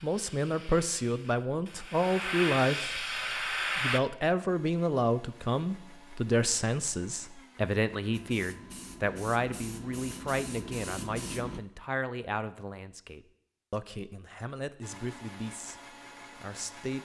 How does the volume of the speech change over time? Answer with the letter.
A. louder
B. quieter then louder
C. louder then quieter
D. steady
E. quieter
E.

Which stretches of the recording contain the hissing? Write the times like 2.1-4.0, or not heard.
0.0-4.0, 8.1-11.6.